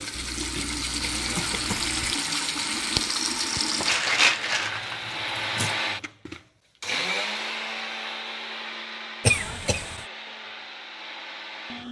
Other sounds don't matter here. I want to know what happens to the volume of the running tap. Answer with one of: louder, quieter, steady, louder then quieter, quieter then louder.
louder then quieter.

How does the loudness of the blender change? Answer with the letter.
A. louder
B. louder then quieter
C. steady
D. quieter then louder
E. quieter
B.